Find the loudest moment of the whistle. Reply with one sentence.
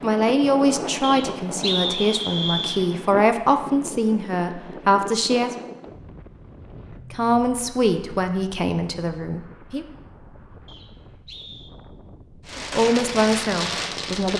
The volume of the whistle peaks at 2 seconds.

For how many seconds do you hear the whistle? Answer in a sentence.
You can hear the whistle for 3 seconds altogether.